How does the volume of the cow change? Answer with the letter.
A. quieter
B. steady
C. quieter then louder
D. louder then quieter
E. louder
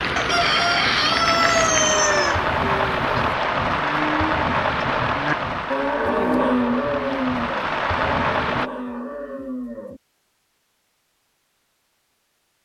D.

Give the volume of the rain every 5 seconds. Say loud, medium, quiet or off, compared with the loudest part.
loud, loud, off.